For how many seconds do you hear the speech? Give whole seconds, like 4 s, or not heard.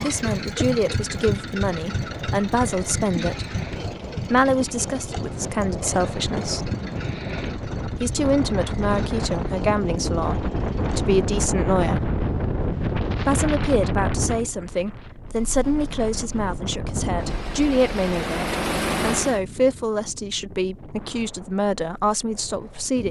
20 s.